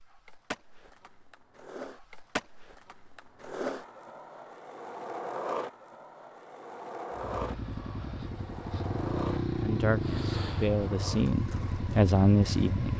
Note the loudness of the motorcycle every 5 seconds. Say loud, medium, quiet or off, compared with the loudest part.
off, loud, loud.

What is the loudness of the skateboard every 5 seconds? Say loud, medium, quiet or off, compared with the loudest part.
loud, loud, medium.